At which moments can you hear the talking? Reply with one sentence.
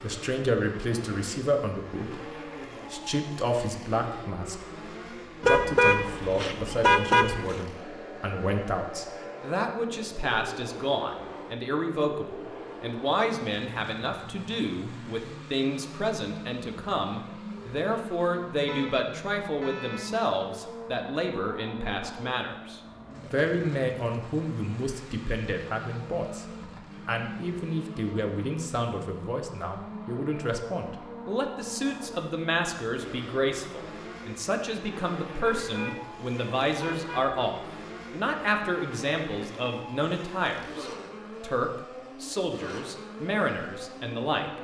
The talking can be heard from 0.0 to 26.4 s and from 27.1 to 44.5 s.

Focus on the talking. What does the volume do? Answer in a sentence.
The volume of the talking stays about the same.